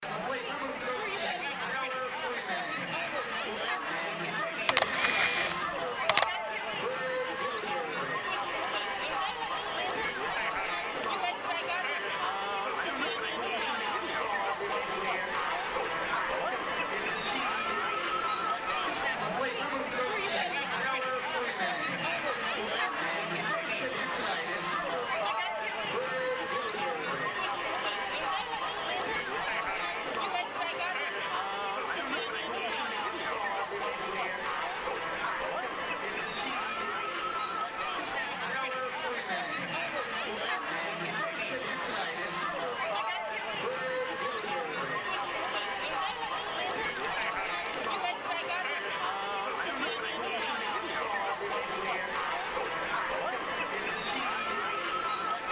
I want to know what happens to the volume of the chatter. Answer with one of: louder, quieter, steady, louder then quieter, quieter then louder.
steady.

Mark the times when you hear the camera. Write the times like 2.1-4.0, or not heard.
4.7-6.4, 47.0-48.0.